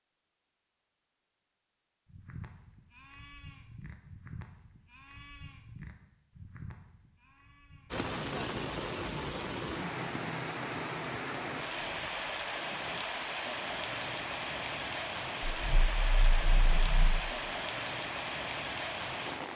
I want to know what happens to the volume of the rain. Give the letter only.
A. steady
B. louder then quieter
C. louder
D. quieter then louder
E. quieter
A.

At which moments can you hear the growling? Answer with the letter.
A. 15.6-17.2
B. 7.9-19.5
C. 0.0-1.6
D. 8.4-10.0
A.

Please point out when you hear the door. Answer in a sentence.
The door can't be heard in this clip.